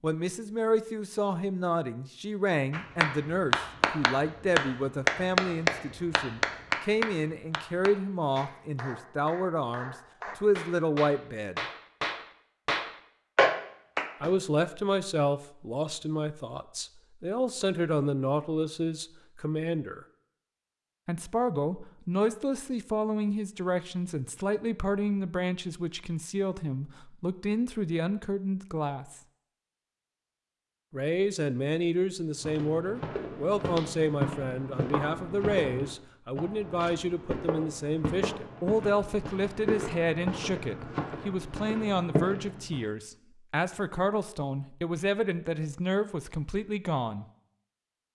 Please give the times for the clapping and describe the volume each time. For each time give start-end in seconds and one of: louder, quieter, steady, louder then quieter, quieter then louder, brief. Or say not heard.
2.7-14.3 quieter then louder.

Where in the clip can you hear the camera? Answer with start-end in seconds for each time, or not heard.
not heard.